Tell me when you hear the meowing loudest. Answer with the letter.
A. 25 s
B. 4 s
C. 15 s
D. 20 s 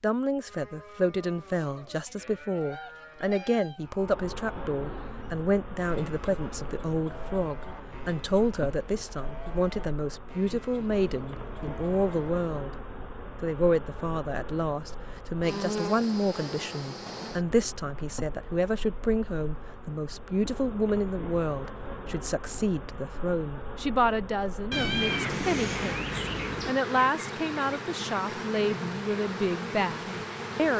A.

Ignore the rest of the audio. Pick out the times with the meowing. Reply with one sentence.
The meowing can be heard from 2.5 to 4.0 s and from 24.7 to 26.7 s.